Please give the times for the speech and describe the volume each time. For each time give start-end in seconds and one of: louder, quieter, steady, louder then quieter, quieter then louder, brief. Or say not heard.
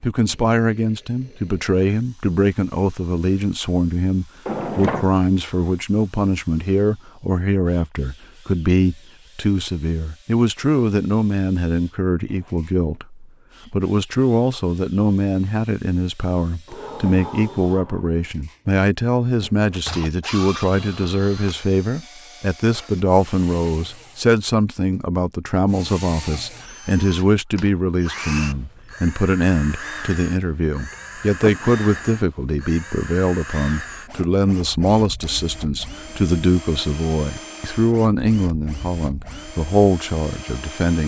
0.0-41.0 steady.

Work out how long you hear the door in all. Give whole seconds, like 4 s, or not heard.
3 s.